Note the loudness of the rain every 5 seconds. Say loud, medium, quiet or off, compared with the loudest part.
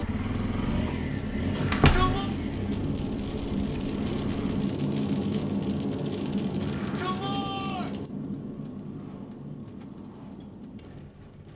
loud, loud, quiet.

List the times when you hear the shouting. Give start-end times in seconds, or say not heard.
1.6-2.3, 6.6-8.0.